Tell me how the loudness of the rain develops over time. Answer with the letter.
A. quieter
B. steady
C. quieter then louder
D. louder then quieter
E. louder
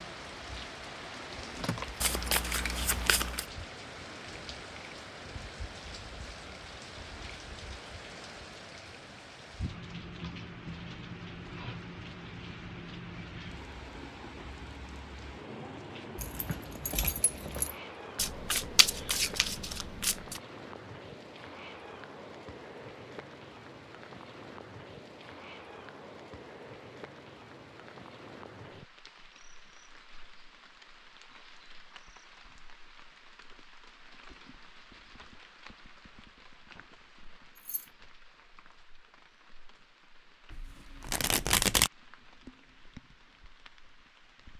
A.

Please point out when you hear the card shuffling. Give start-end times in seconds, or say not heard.
2.0-3.5, 18.1-20.4, 40.5-41.9.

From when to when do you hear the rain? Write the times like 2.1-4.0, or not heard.
0.0-44.5.